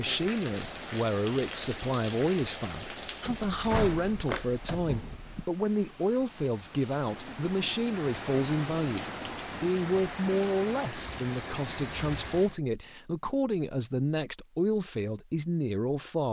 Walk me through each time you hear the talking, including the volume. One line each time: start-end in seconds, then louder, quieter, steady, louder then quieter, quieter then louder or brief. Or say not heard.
0.0-16.2 steady.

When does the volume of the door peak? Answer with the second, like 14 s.
4 s.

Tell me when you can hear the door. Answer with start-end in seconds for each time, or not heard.
3.2-5.5.